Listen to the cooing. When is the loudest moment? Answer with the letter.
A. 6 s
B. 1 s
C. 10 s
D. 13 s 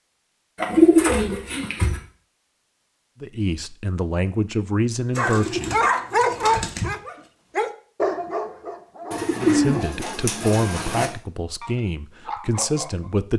B.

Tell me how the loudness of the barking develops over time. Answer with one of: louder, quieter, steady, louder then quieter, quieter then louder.
quieter.